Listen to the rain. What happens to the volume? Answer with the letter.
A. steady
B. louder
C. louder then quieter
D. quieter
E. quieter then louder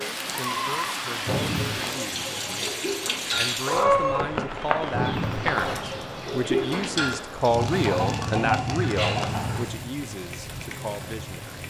D.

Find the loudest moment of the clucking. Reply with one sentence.
The loudest moment of the clucking is at 4 seconds.